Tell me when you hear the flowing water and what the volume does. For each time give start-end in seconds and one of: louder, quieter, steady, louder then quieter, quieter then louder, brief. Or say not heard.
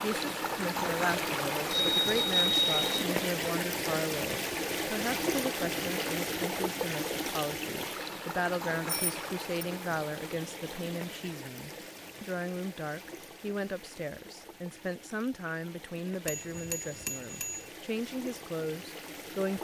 0.0-19.6 quieter.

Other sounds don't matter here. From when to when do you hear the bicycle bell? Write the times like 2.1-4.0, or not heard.
1.7-3.0, 8.8-9.7, 16.2-17.6.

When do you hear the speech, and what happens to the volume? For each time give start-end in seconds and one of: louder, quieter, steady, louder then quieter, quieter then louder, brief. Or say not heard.
0.0-19.6 steady.